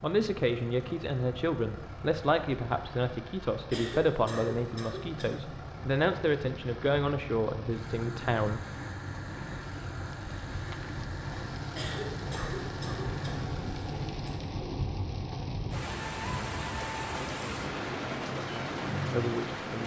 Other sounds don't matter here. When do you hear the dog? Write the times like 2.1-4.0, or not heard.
not heard.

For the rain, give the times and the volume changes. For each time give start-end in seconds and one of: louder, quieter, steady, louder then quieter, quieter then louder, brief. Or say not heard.
0.0-19.8 louder.